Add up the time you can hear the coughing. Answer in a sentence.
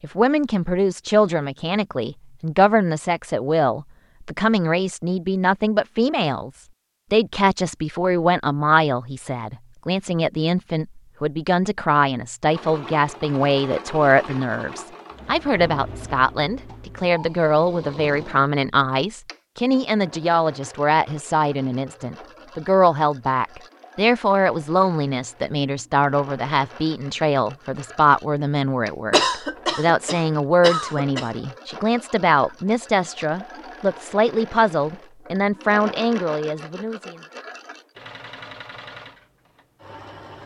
The coughing can be heard for 2 seconds in total.